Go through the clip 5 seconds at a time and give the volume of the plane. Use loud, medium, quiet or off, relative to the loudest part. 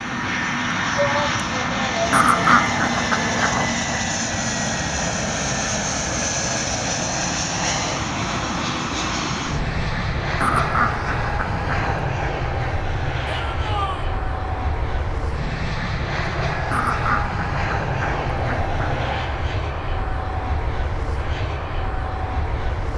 loud, loud, loud, loud, medium.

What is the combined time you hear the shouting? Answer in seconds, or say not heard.
2 s.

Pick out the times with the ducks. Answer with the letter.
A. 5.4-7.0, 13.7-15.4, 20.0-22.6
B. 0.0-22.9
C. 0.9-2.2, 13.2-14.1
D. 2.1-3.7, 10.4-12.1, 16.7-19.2
D.